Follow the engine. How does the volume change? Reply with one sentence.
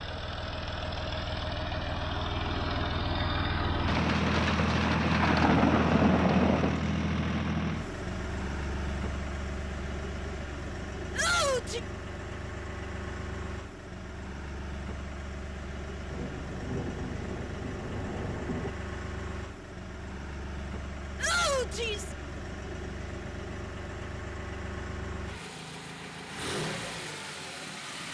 The volume of the engine goes down.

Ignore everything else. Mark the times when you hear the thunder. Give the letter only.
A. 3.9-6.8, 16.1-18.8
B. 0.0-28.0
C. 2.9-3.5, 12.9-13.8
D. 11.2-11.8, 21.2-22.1
A.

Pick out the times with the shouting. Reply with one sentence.
The shouting can be heard from 11.2 to 11.8 s and from 21.2 to 22.1 s.